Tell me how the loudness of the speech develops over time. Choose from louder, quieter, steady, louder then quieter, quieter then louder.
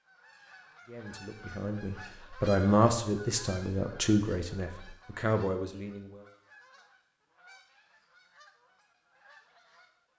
louder then quieter.